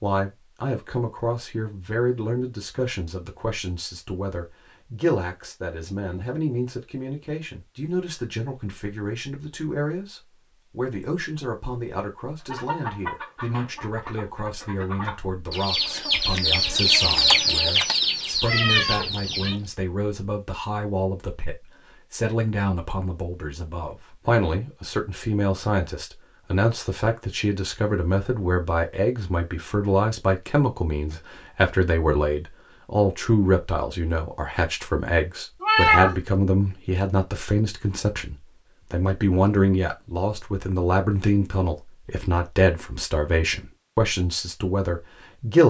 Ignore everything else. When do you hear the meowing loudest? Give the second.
36 s.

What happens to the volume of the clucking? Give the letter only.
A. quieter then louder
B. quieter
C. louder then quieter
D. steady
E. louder
C.